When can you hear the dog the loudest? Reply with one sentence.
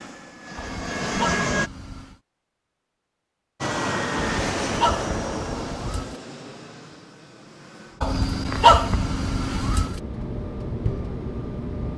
The volume of the dog peaks at 9 seconds.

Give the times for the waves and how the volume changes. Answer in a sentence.
You can't hear the waves here.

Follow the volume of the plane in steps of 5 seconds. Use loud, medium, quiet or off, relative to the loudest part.
loud, medium, medium.